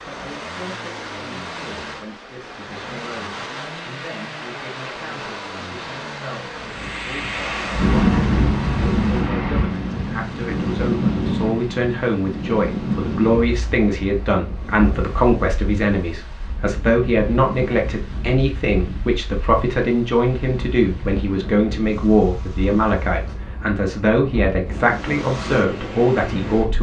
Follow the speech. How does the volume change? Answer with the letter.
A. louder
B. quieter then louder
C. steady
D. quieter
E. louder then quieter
A.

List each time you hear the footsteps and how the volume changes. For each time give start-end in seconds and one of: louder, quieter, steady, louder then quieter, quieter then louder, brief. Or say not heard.
not heard.